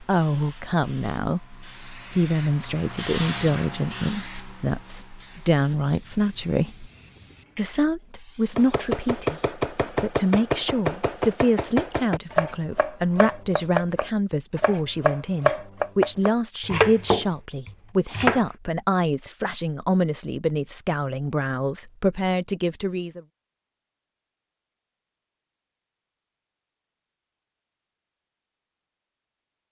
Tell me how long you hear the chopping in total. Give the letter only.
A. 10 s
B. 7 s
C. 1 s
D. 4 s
A.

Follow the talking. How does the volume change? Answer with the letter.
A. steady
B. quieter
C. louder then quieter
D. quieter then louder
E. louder
A.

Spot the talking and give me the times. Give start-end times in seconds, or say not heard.
0.0-6.9, 7.5-23.2.